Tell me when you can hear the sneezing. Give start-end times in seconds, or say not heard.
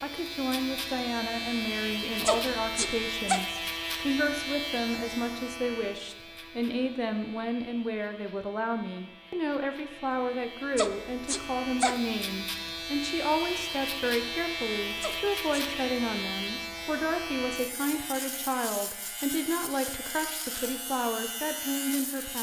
2.2-3.4, 10.8-12.0, 15.0-15.7.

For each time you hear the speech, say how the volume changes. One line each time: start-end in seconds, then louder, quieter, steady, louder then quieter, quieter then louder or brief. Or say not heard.
0.0-22.3 steady.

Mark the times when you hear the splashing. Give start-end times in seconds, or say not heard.
not heard.